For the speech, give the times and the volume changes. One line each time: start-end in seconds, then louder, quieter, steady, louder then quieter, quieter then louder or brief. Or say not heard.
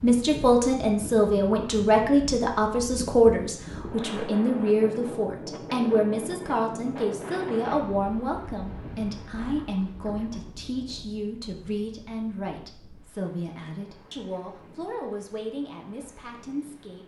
0.0-17.0 quieter.